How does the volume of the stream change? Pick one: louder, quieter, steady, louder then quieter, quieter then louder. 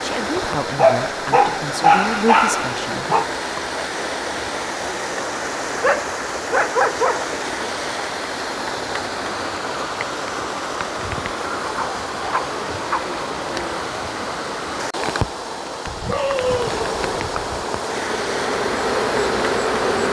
steady.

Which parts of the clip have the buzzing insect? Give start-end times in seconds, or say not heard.
16.6-20.0.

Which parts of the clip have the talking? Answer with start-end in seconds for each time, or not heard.
0.0-3.0.